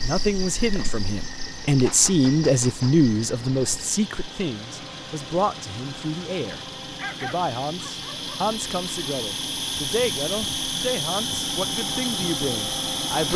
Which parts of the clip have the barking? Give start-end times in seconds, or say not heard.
7.0-8.5.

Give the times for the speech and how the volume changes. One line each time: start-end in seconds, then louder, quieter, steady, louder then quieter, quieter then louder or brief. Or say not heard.
0.0-13.3 quieter.